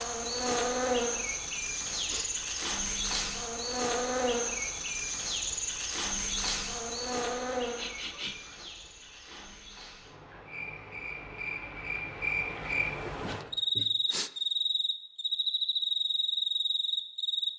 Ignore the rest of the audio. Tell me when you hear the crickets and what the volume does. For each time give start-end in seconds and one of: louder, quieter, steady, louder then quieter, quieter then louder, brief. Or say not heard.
0.0-17.5 quieter then louder.